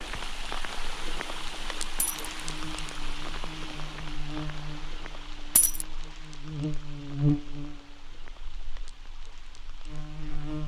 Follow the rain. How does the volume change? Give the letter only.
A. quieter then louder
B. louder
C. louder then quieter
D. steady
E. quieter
E.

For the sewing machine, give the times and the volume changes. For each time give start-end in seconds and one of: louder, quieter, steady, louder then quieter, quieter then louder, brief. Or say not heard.
not heard.